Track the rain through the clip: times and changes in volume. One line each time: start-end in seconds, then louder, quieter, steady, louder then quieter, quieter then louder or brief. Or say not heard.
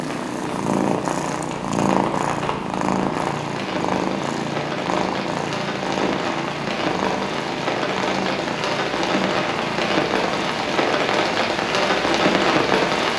0.0-13.1 louder.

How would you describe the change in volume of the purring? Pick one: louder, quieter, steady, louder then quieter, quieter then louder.
quieter.